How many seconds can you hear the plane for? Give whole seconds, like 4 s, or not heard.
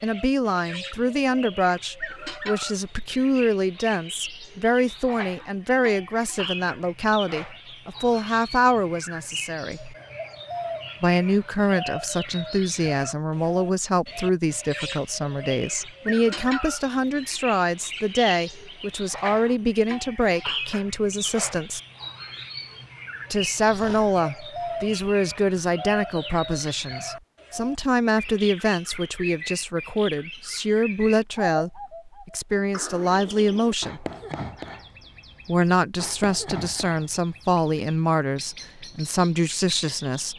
not heard.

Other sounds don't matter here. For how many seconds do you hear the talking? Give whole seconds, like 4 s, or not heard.
36 s.